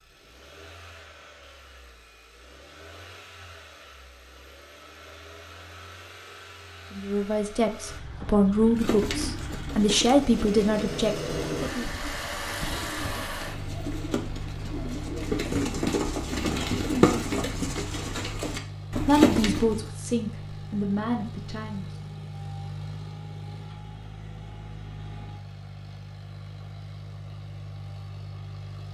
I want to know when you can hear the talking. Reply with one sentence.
The talking can be heard from 7.0 to 11.8 s and from 19.1 to 21.9 s.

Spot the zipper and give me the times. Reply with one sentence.
You can't hear the zipper here.